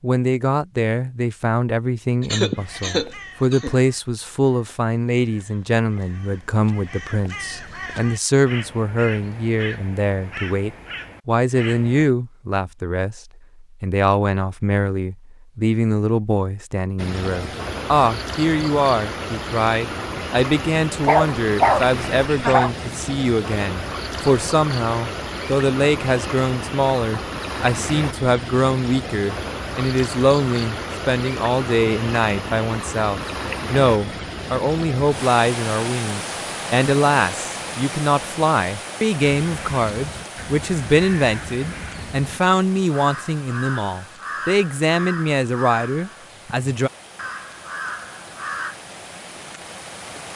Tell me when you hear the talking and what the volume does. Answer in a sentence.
You can hear the talking from 0.0 to 46.9 s, at a steady volume.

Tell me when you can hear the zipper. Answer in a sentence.
You can't hear the zipper here.